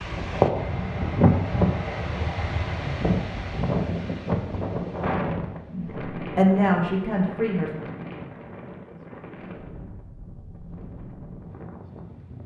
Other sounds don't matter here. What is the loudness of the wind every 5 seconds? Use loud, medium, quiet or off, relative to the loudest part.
loud, medium, quiet.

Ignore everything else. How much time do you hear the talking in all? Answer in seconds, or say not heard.
2 s.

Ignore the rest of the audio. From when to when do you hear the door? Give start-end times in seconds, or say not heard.
not heard.